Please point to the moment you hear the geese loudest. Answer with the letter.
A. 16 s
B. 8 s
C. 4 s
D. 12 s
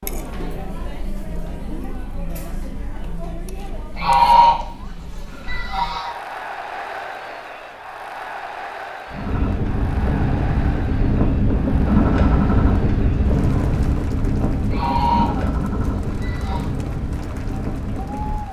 C.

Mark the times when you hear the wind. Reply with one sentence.
The wind can be heard from 9.1 to 18.4 s.